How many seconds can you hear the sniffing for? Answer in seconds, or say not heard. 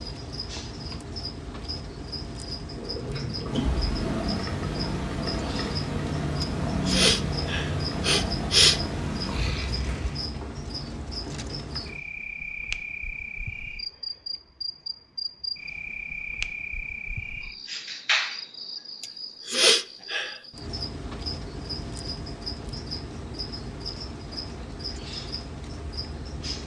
4 s.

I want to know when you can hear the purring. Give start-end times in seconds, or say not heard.
2.6-10.4.